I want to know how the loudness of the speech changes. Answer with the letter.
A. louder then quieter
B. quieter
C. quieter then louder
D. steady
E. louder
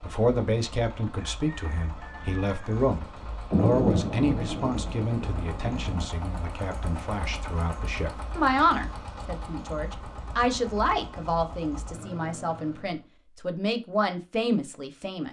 D.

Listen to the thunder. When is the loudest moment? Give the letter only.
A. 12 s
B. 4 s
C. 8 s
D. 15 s
B.